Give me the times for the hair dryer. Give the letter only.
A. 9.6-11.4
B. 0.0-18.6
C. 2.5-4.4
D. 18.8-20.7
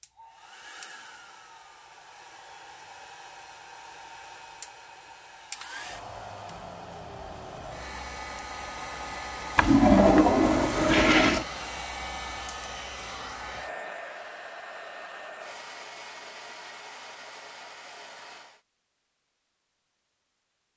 B.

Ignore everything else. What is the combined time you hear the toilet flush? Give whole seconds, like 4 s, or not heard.
2 s.